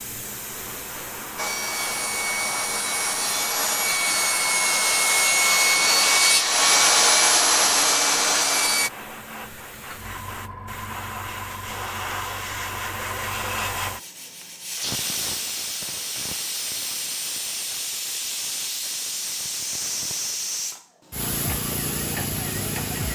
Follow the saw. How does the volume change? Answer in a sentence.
The loudness of the saw goes up.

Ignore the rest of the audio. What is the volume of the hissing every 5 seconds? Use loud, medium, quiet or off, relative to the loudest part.
medium, medium, loud, loud, loud.